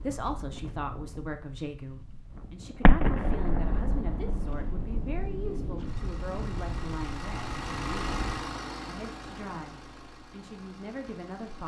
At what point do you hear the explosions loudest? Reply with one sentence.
The loudest moment of the explosions is at 3 seconds.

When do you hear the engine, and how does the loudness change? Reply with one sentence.
The engine can be heard from 5.8 to 11.6 s, getting louder then quieter.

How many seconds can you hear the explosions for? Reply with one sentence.
The explosions can be heard for 3 seconds in total.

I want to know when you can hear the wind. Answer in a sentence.
You can hear the wind from 0.0 to 8.4 s.